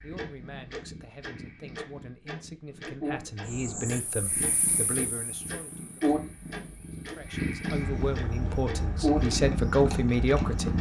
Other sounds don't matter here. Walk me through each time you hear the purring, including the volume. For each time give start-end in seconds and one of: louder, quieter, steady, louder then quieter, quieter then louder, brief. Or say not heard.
0.0-10.7 louder.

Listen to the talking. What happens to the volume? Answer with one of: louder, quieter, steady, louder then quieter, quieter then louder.
louder.